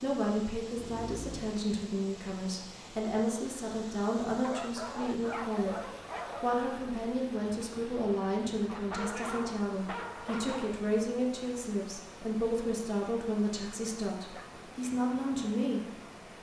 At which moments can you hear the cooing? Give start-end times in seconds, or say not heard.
not heard.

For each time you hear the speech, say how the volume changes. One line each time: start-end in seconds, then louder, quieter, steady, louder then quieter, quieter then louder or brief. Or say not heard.
0.0-15.8 steady.